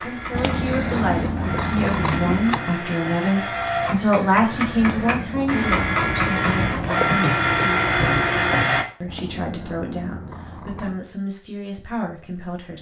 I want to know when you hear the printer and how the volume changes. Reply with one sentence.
The printer can be heard from 0.0 to 8.8 s, getting louder.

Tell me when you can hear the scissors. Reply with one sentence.
The scissors can be heard from 0.3 to 2.6 s, from 4.8 to 7.0 s and from 9.1 to 11.1 s.